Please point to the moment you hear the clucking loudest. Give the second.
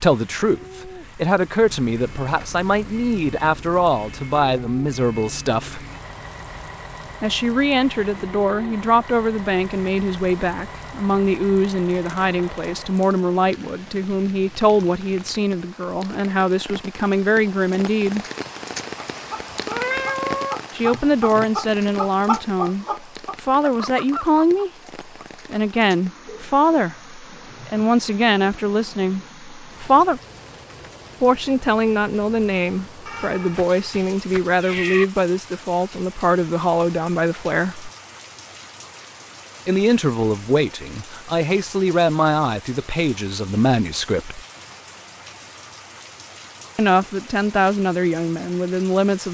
22 s.